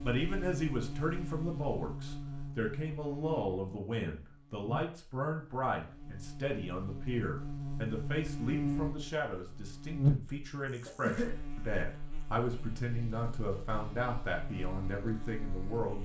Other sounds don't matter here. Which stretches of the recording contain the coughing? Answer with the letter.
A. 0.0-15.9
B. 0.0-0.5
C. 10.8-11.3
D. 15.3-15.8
C.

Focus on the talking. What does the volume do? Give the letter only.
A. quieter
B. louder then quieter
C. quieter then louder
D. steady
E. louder
D.